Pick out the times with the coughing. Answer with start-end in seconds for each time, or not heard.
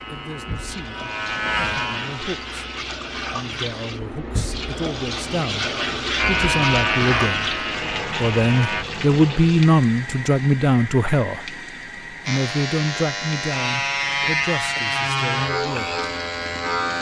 not heard.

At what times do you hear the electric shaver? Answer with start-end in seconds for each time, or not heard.
0.0-2.8, 6.2-8.8, 12.2-16.9.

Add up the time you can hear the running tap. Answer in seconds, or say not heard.
17 s.